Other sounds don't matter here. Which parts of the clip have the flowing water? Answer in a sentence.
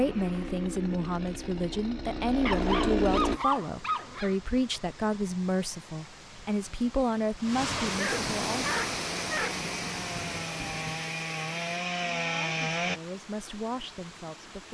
You can hear the flowing water from 3.2 to 14.6 s.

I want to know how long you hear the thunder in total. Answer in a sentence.
You can hear the thunder for 3 seconds altogether.